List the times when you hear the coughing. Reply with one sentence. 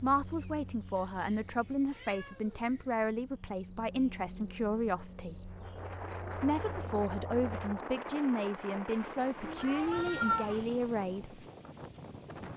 The coughing can't be heard in this clip.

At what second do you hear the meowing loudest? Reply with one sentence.
The volume of the meowing peaks at 10 seconds.